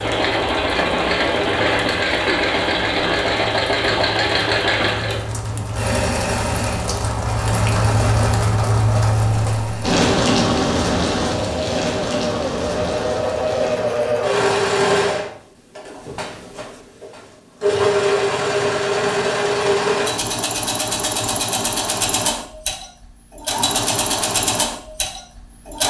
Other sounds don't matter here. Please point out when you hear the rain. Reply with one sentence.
You can hear the rain from 0.0 to 14.1 s.